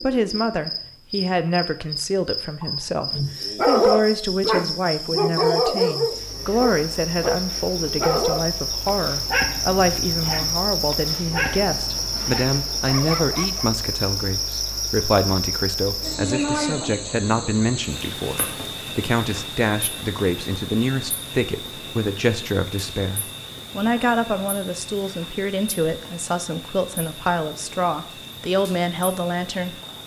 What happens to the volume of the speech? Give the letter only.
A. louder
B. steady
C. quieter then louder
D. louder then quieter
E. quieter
B.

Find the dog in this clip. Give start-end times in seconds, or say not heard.
3.5-13.7.